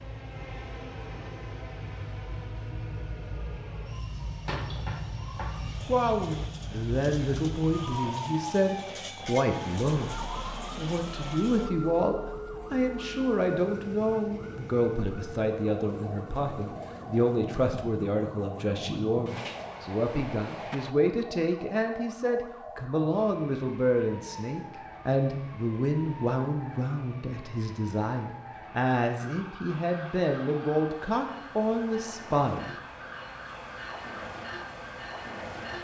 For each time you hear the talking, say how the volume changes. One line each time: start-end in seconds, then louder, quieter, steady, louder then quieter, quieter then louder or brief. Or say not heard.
5.8-32.8 steady.